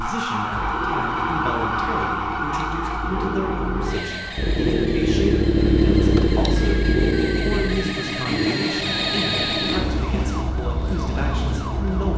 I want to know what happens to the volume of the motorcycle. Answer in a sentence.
The volume of the motorcycle goes up, then down.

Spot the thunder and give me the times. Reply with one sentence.
The thunder can be heard from 8.4 to 10.4 s.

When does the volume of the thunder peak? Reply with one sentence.
The volume of the thunder peaks at 10 seconds.